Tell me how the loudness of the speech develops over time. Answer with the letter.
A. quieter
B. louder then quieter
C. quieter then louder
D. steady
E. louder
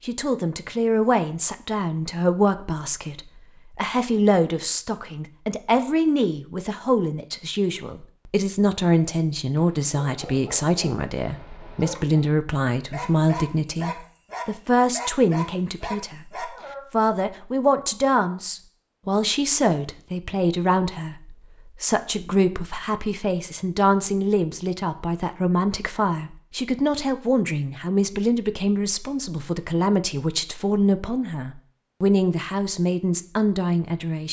D.